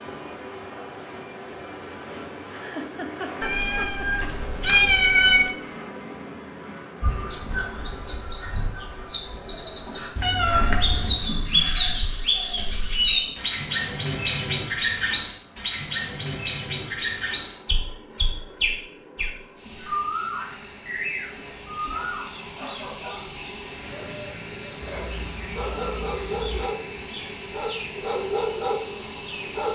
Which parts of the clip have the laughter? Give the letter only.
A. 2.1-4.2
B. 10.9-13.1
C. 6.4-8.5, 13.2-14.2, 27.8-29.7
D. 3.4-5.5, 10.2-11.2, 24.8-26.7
A.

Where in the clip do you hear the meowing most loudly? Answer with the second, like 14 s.
5 s.